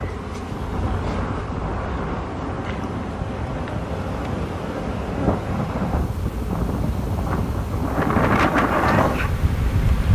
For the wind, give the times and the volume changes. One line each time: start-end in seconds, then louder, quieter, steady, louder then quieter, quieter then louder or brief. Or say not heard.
0.0-10.1 louder.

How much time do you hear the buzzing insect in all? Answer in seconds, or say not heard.
10 s.